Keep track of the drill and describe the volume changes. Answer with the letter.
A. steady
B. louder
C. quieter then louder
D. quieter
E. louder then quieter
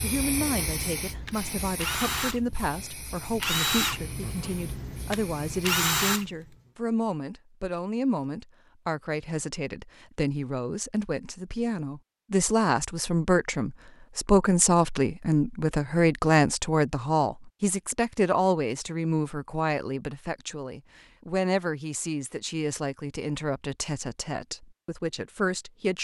B.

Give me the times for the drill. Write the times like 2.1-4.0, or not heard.
0.0-6.3.